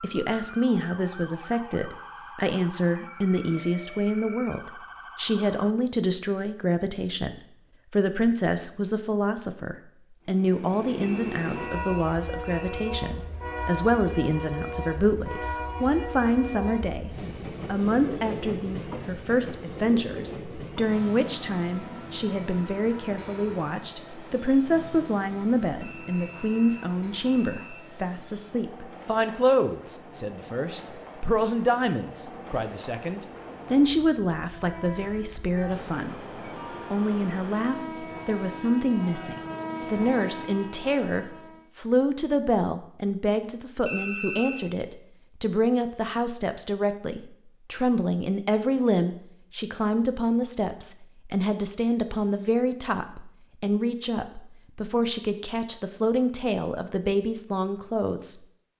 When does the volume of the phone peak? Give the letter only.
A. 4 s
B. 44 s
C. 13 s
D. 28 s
B.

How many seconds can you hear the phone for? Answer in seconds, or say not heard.
5 s.